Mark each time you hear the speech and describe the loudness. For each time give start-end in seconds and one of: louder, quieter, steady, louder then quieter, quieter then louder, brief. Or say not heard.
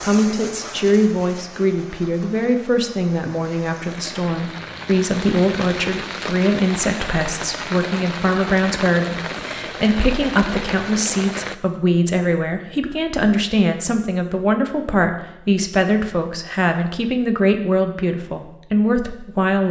0.0-19.6 steady.